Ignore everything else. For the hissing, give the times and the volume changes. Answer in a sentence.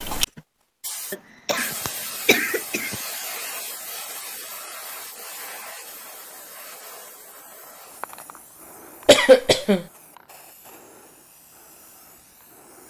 You can hear the hissing from 0.0 to 12.8 s, getting quieter.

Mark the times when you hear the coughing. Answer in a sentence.
You can hear the coughing from 1.1 to 3.0 s and from 9.1 to 9.8 s.